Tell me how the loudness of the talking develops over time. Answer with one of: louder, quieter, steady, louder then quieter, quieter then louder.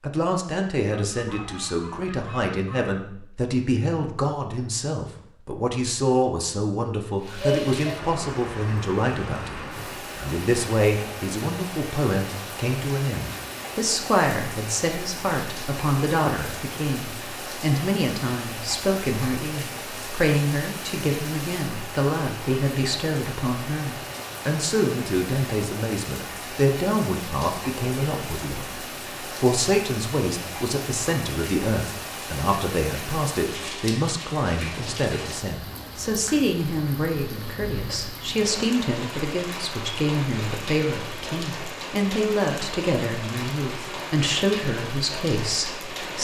steady.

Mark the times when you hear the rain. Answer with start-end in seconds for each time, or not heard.
7.2-46.1.